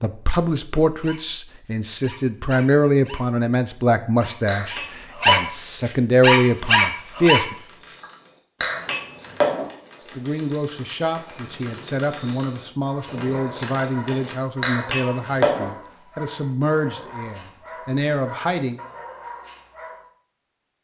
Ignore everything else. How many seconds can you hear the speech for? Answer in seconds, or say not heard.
16 s.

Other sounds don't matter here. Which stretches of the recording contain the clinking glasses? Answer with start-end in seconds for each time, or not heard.
4.5-5.4, 8.6-9.7, 14.6-15.7.